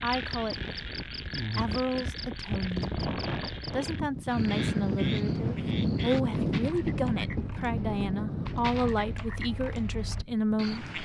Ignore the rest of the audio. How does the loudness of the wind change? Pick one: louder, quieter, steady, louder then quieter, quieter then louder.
louder then quieter.